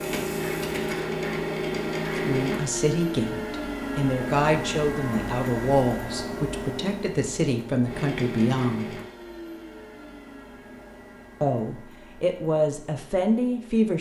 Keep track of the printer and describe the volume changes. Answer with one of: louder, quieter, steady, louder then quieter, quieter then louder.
quieter.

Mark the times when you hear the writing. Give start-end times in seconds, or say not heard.
not heard.